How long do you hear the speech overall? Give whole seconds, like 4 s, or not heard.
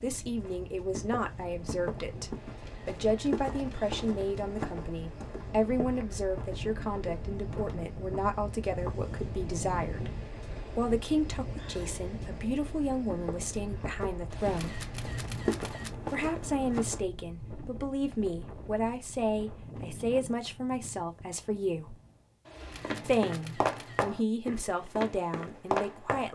23 s.